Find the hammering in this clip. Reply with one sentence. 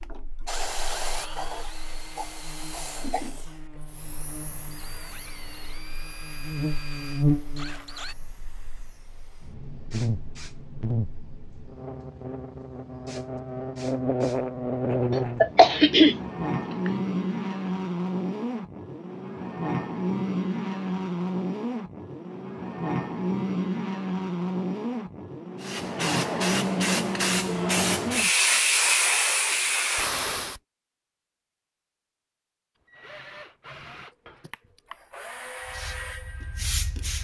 The hammering can't be heard in this clip.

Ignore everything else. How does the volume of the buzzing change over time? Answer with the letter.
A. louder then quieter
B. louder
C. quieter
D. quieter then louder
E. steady
B.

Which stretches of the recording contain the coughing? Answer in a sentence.
The coughing can be heard from 15.4 to 16.9 s and from 34.4 to 35.0 s.